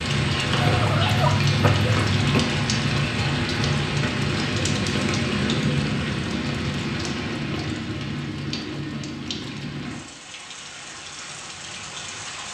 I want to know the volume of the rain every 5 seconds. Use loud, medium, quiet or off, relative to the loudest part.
loud, loud, quiet.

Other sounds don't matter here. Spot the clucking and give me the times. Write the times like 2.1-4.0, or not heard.
0.6-2.4.